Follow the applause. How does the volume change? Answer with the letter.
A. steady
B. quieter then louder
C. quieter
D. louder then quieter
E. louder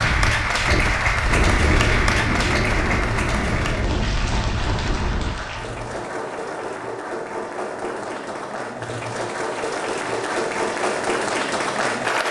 B.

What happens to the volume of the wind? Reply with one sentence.
The volume of the wind goes down.